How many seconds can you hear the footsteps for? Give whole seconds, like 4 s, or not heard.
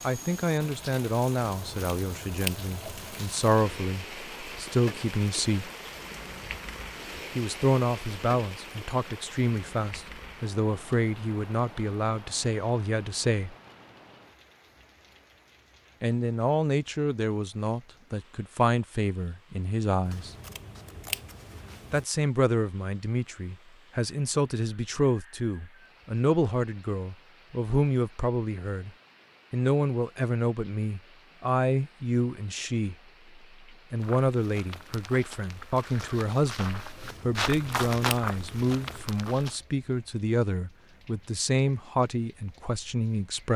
6 s.